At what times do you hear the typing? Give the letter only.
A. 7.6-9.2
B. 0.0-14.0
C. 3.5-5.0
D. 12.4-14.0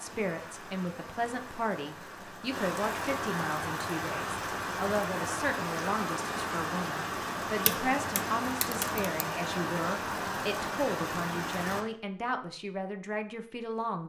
A.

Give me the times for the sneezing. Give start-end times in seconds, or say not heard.
not heard.